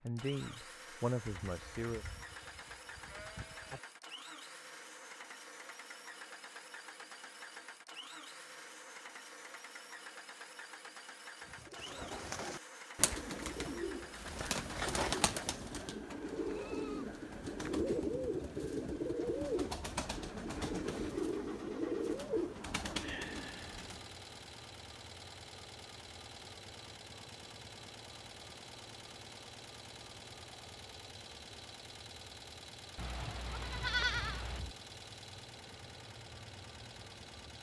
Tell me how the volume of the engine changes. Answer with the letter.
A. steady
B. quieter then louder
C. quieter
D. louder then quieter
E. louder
A.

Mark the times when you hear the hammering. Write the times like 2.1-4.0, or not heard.
not heard.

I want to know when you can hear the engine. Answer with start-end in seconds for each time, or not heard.
0.0-37.5.